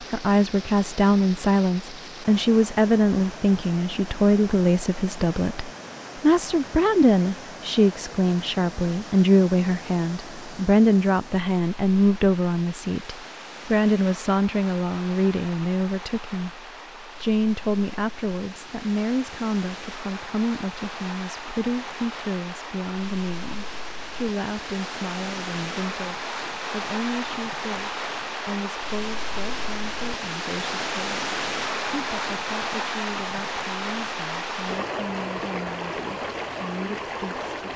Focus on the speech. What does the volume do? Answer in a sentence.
The loudness of the speech goes down.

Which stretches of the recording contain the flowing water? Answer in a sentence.
The flowing water can be heard from 0.0 to 37.7 s.